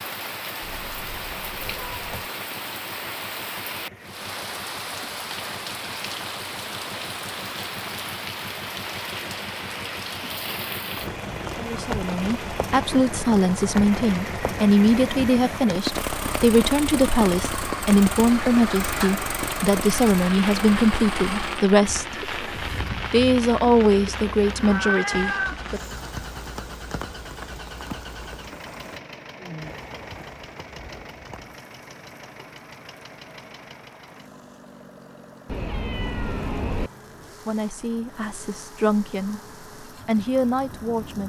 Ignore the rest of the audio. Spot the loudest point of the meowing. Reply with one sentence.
The volume of the meowing peaks at 25 seconds.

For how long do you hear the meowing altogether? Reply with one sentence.
The meowing can be heard for 4 seconds in total.